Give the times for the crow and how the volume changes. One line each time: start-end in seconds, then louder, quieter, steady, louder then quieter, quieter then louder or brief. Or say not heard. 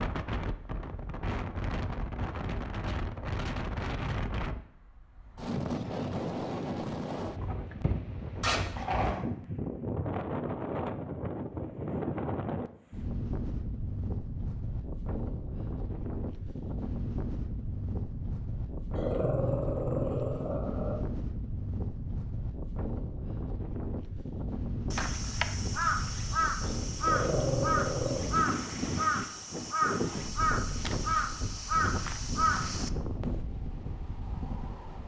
24.9-33.4 steady.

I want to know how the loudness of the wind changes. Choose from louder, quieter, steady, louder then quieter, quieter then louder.
steady.